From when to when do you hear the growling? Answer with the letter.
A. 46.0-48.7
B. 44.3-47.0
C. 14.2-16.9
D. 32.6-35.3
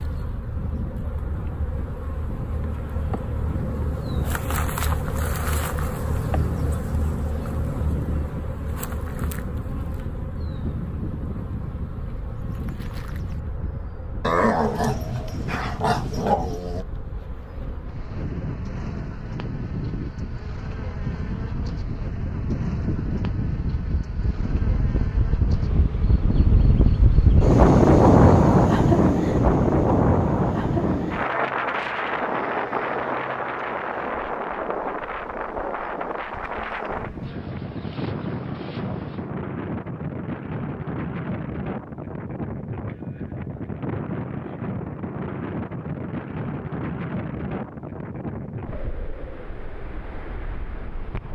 C.